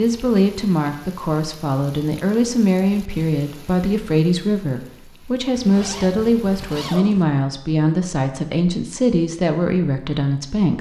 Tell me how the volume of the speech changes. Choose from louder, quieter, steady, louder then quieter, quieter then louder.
steady.